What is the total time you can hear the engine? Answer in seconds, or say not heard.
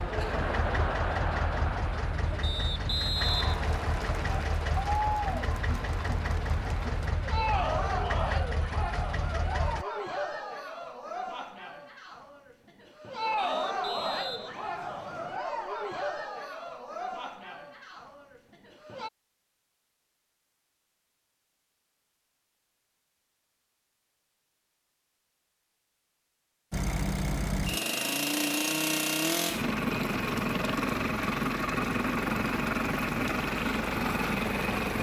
18 s.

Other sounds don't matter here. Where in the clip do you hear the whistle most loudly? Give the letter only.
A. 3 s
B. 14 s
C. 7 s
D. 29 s
A.